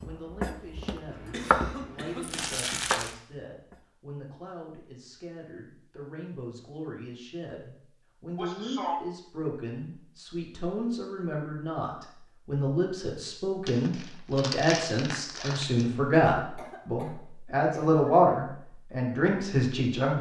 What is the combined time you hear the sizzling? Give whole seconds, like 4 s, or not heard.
not heard.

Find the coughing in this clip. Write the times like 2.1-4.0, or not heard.
1.1-2.9, 8.3-8.9, 16.4-18.0.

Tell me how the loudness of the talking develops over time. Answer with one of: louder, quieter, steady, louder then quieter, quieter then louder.
louder.